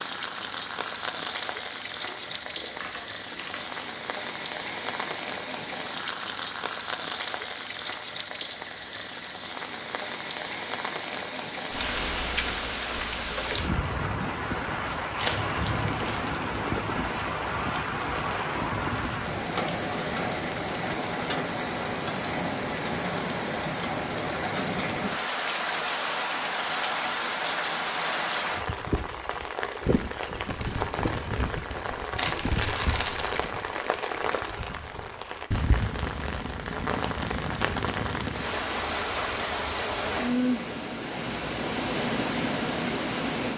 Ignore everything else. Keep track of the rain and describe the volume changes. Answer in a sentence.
The loudness of the rain stays about the same.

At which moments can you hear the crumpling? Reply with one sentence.
The crumpling can be heard from 2.0 to 3.9 s, from 15.2 to 16.3 s and from 32.1 to 33.5 s.